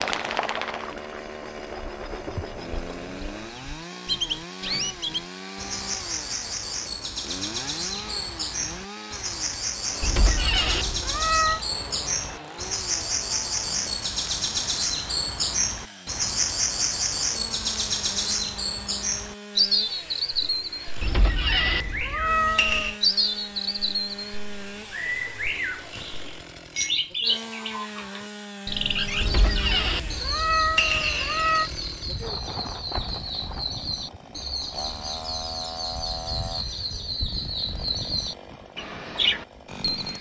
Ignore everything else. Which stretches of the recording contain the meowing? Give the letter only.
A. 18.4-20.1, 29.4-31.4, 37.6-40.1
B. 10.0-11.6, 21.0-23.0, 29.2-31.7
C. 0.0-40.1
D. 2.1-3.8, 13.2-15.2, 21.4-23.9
B.